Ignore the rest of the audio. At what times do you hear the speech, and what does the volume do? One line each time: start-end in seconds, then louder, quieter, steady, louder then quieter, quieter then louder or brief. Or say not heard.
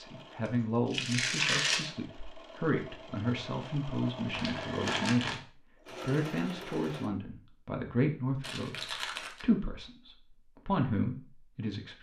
0.0-11.9 steady.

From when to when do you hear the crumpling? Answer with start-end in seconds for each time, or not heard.
0.5-1.9, 4.3-5.4, 8.4-9.4.